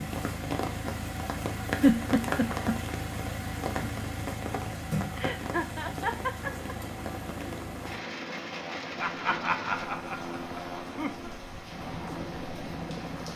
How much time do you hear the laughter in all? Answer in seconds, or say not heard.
5 s.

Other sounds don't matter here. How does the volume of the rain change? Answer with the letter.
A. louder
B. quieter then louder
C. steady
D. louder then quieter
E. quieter
E.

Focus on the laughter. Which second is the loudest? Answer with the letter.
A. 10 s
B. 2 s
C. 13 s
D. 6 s
B.